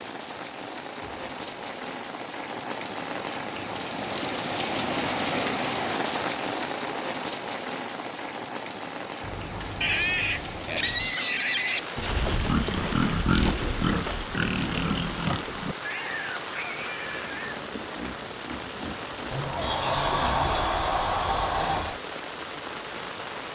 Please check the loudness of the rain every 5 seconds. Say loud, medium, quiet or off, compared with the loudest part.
loud, loud, medium, medium, medium.